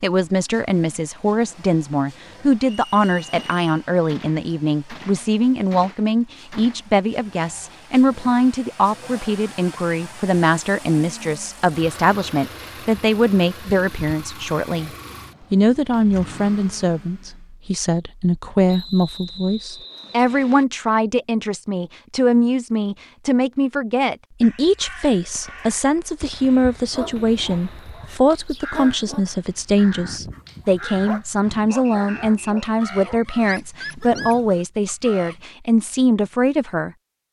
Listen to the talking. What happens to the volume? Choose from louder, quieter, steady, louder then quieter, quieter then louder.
steady.